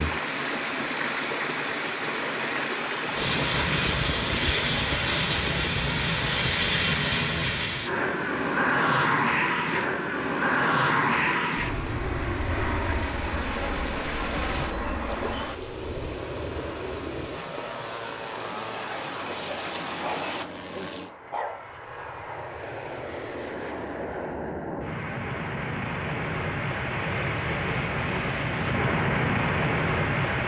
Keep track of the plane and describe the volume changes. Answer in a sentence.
The loudness of the plane goes down, then up.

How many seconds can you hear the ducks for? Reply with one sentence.
You can't hear the ducks here.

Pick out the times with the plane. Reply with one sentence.
The plane can be heard from 3.1 to 30.4 s.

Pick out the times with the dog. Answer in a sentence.
You can hear the dog from 20.0 to 21.7 s.